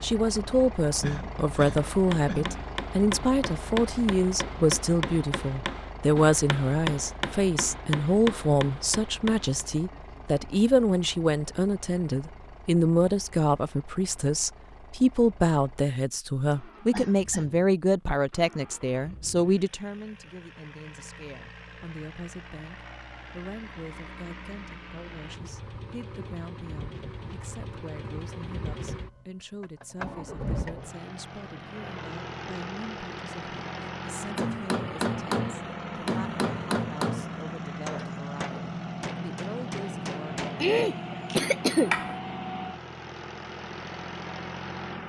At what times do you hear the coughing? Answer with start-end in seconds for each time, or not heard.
1.0-2.5, 16.5-17.6, 40.6-41.9.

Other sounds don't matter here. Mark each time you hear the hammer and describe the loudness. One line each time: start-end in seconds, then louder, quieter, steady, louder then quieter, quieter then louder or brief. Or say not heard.
1.8-9.5 steady
34.4-42.2 quieter.